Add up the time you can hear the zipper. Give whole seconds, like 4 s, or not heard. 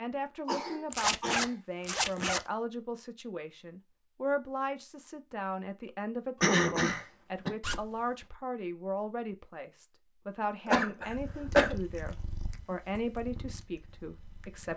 2 s.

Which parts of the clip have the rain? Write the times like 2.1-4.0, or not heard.
not heard.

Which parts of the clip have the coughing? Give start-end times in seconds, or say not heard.
0.5-1.5, 6.4-7.5, 10.7-11.8.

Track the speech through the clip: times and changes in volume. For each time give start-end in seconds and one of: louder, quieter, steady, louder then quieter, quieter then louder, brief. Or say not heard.
0.0-14.7 steady.